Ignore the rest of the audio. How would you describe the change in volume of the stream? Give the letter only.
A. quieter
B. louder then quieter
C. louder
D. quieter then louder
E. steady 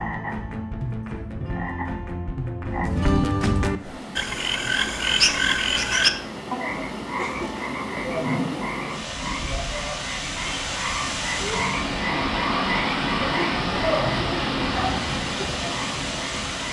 C.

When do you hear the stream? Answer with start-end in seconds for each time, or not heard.
3.8-16.6.